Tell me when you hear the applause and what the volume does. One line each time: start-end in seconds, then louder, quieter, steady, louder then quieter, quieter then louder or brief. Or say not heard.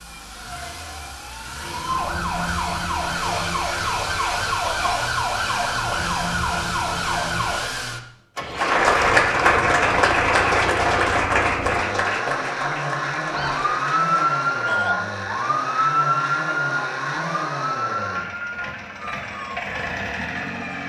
8.5-14.8 quieter.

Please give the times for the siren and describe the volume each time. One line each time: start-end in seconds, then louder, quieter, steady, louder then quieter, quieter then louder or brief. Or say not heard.
0.0-7.7 louder
13.2-20.8 quieter.